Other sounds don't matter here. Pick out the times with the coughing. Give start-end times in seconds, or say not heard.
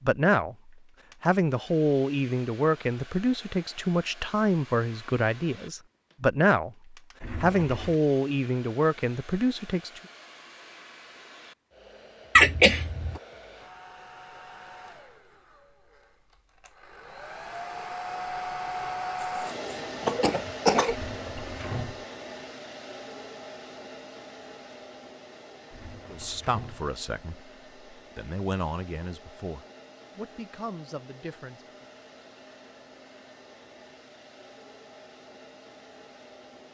12.3-13.2, 19.2-20.9.